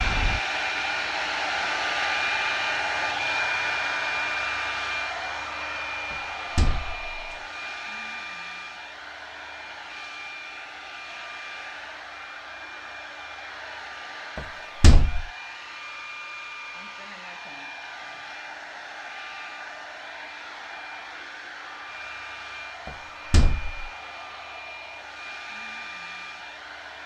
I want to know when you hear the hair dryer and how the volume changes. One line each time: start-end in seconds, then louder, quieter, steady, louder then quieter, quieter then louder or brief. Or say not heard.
0.0-27.0 quieter.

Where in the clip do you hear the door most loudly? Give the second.
15 s.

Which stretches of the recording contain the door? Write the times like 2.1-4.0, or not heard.
6.1-7.3, 14.3-15.2, 22.9-23.9.